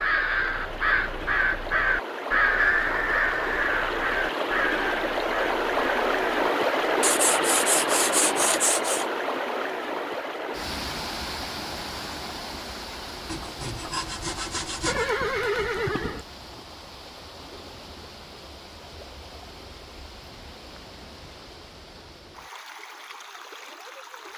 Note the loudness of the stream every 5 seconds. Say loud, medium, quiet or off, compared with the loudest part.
medium, loud, medium, quiet, quiet.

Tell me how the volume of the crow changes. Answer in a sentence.
The loudness of the crow goes down.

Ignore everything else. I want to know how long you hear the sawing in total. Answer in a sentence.
The sawing can be heard for 4 seconds in total.